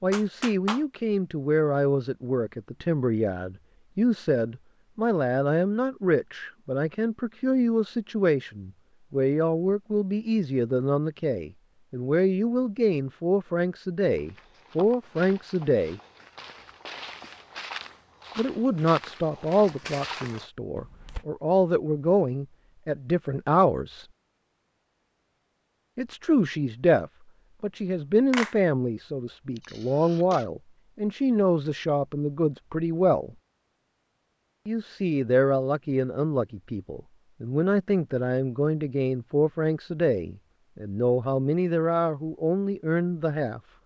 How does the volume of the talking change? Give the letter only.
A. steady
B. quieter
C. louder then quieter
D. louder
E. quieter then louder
A.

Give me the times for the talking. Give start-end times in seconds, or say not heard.
0.0-16.0, 18.4-24.1, 25.9-33.4, 34.6-43.6.